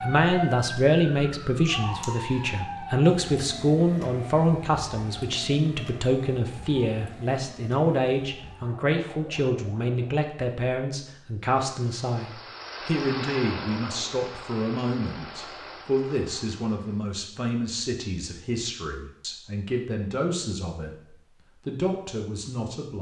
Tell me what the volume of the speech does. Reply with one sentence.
The loudness of the speech goes down.